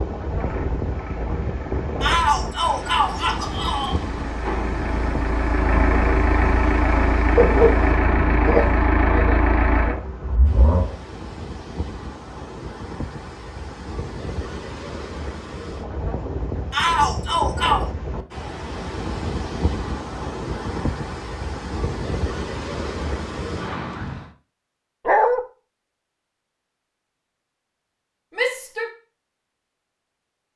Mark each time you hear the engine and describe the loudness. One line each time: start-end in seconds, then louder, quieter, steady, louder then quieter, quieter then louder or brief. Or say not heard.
0.2-10.9 louder.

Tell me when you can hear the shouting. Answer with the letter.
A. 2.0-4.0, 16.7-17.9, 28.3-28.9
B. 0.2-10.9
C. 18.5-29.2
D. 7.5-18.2
A.